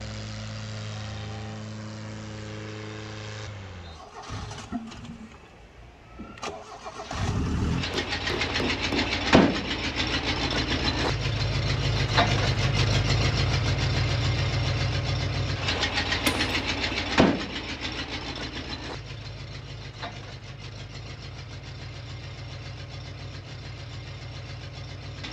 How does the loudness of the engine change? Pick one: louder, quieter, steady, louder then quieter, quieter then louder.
louder then quieter.